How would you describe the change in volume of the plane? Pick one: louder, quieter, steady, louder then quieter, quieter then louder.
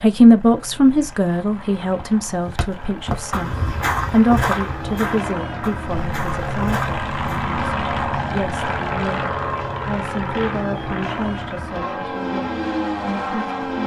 louder.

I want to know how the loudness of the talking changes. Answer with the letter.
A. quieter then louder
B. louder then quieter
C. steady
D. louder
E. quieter
E.